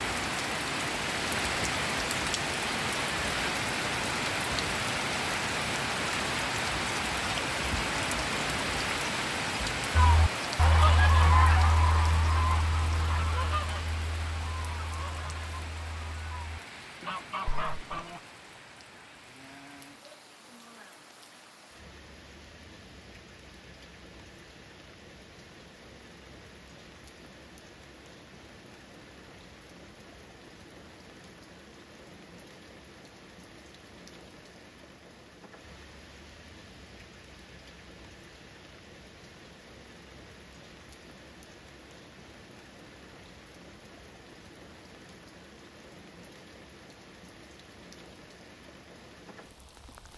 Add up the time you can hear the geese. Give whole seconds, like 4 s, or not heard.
8 s.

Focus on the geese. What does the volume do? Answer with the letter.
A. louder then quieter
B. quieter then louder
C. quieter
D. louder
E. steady
B.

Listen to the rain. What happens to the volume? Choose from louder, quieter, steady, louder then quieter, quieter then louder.
quieter.